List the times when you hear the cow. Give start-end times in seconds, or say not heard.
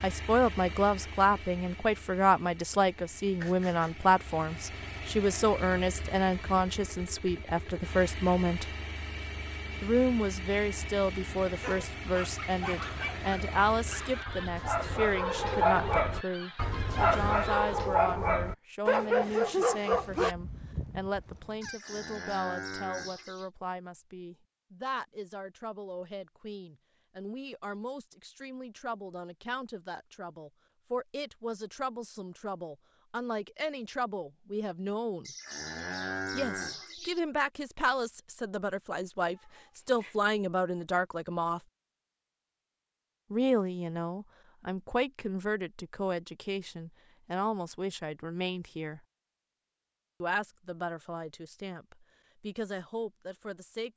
21.6-23.5, 35.2-37.2.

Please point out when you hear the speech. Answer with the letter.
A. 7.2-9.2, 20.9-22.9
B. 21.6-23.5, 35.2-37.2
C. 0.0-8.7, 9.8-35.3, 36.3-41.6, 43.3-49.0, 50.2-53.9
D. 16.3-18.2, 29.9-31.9
C.